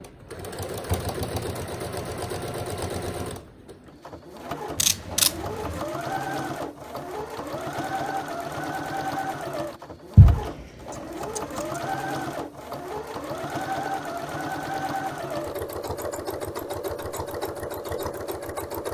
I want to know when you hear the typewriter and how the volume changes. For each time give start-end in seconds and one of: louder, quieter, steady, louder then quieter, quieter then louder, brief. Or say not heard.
not heard.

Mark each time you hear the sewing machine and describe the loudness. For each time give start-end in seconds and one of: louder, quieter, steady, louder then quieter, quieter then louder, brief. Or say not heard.
0.0-18.8 steady.